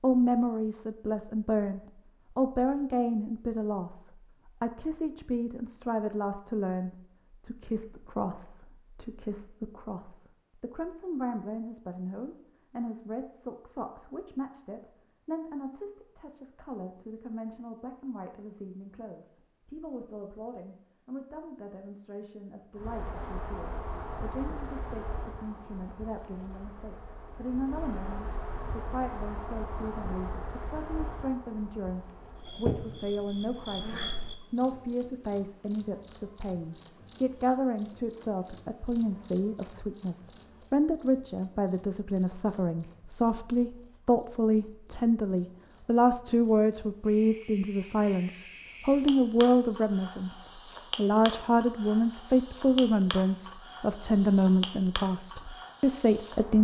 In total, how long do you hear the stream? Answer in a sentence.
You can't hear the stream here.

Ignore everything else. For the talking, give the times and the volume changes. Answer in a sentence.
You can hear the talking from 0.0 to 56.5 s, getting quieter then louder.